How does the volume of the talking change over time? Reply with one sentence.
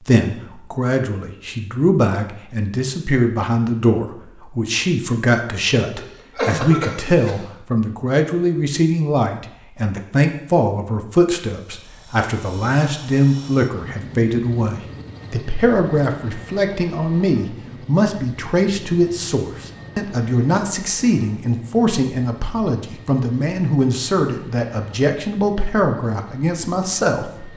The volume of the talking stays about the same.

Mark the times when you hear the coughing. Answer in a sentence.
You can hear the coughing from 6.0 to 7.4 s.